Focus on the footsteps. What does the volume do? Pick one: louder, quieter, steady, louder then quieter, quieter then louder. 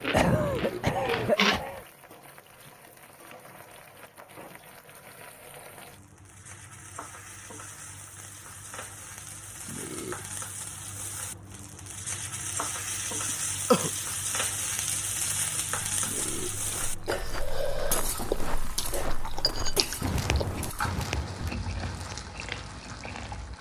louder.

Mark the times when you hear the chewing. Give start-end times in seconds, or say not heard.
0.0-1.6, 16.8-23.5.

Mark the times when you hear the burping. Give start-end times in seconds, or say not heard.
0.5-0.9, 9.7-10.2, 16.0-16.6.